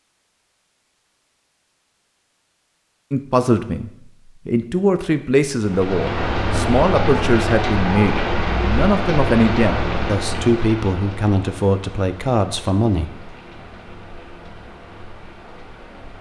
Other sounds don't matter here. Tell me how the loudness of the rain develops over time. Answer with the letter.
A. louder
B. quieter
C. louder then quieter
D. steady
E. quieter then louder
B.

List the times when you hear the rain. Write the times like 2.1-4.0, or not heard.
5.6-16.1.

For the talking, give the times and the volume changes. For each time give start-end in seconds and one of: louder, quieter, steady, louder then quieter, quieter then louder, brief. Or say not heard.
3.1-13.2 steady.